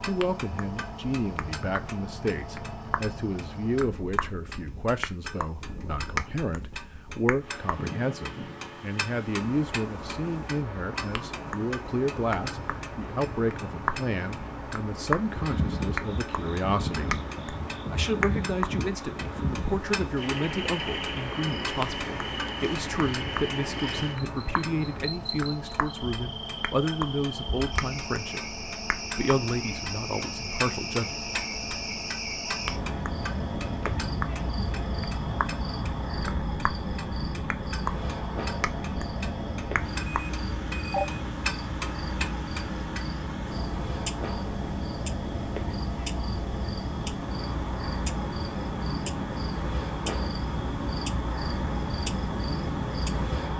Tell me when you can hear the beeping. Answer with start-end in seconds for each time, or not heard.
40.0-41.2.